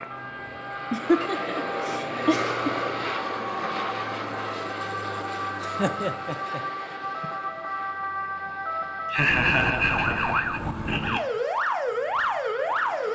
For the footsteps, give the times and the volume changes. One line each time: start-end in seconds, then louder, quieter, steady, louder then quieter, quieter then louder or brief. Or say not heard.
not heard.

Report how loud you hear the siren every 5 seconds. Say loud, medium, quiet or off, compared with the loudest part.
medium, medium, loud.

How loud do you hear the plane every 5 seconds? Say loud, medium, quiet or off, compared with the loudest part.
loud, medium, quiet.